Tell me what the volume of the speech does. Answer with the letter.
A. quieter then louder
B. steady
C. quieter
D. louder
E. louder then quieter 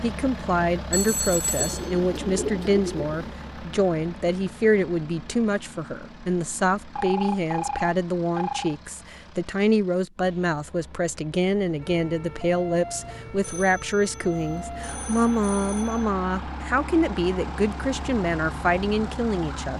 B.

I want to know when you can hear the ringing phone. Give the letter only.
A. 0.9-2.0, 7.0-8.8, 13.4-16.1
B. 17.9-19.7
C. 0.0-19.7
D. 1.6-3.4
A.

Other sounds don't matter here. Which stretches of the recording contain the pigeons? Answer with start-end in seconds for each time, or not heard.
1.6-3.4.